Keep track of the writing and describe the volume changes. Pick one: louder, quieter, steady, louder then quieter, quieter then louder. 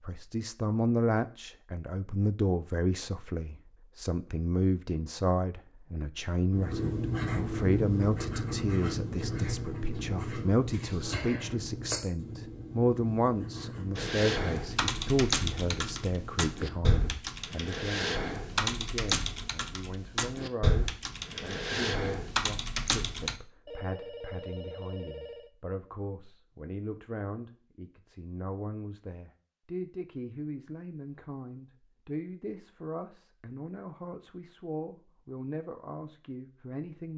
quieter.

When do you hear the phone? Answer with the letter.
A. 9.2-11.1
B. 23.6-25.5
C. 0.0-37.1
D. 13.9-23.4
B.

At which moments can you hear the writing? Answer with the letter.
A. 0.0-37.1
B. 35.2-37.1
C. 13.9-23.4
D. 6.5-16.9
D.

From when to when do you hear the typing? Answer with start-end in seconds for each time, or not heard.
13.9-23.4.